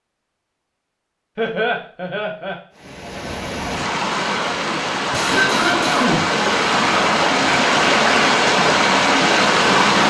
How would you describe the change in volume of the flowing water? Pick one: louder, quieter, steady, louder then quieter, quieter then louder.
louder.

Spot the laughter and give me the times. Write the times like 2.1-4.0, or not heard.
1.4-2.5, 5.1-6.2.